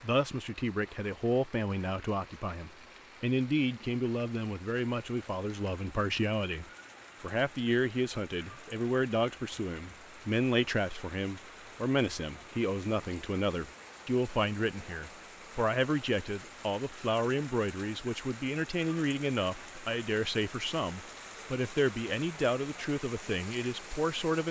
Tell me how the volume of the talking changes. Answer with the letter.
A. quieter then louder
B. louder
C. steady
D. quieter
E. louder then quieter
C.